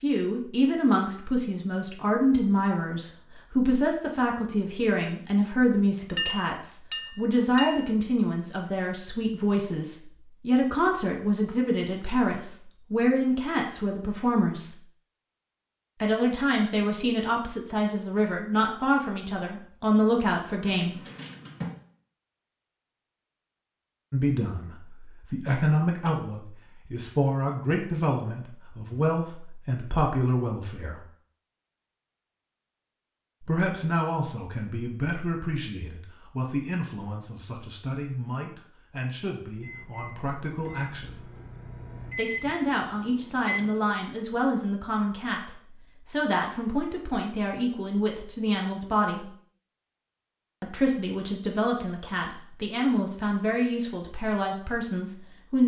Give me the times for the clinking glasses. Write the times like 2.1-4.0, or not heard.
6.2-7.9.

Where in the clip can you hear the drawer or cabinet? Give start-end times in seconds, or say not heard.
20.6-21.8.